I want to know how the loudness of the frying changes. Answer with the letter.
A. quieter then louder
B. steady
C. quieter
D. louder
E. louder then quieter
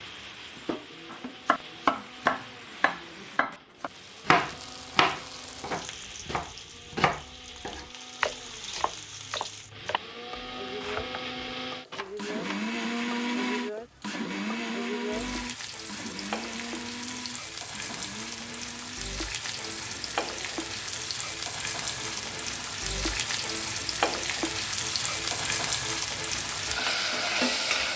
D.